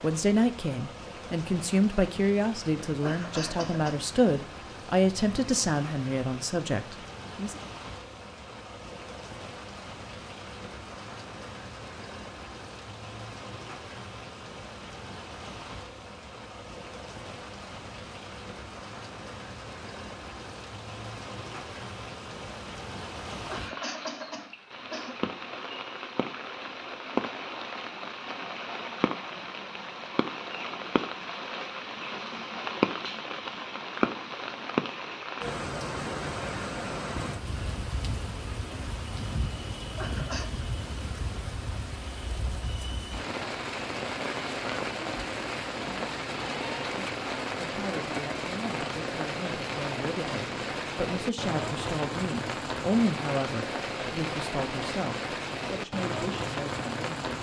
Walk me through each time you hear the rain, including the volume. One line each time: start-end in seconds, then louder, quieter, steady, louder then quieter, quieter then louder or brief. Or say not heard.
0.0-57.3 louder.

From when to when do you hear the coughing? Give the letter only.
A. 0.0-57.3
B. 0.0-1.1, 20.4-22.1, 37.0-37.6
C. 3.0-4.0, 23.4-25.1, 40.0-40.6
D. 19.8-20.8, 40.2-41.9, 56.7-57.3
C.